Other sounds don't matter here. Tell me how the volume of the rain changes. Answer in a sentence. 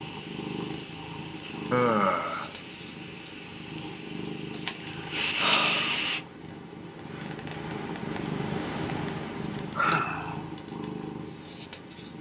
The volume of the rain goes up.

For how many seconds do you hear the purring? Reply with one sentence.
The purring can be heard for 12 seconds in total.